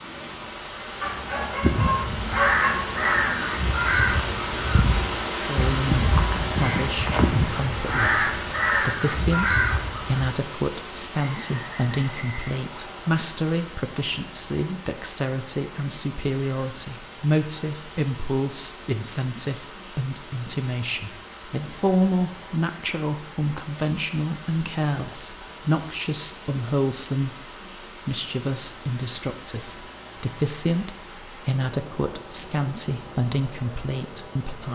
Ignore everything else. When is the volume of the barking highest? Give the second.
3 s.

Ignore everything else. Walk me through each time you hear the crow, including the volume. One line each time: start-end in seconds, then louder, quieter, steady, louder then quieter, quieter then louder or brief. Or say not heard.
1.6-10.3 steady.